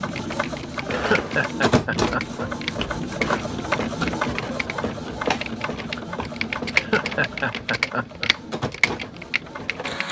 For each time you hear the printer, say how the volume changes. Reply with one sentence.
You can hear the printer from 0.0 to 10.0 s, getting quieter.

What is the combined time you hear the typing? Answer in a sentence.
The typing can be heard for 10 seconds in total.